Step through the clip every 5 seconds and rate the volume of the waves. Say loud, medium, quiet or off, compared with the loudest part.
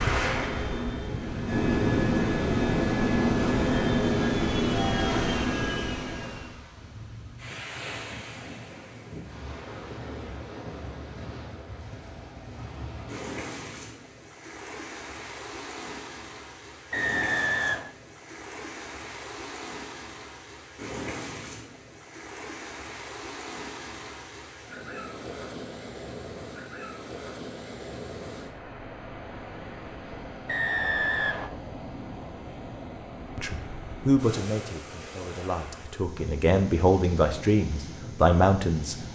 loud, medium, medium, medium, medium, medium, medium, medium.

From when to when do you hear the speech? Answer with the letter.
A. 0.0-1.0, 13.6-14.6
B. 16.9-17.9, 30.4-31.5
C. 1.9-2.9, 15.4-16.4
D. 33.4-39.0
D.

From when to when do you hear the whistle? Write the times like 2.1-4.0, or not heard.
16.9-17.9, 30.4-31.5.